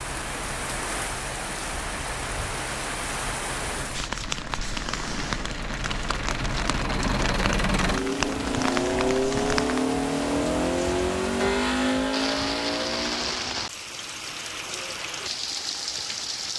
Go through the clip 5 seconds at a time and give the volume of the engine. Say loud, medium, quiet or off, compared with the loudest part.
quiet, loud, loud, off.